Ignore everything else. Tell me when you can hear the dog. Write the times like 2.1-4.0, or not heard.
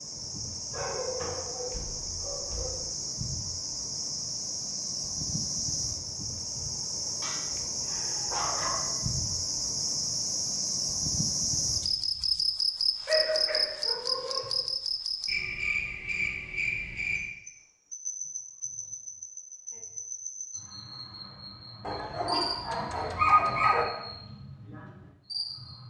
0.7-2.9, 7.2-8.9, 13.1-14.7, 21.8-23.9.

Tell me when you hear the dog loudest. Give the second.
23 s.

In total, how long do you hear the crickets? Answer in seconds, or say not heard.
26 s.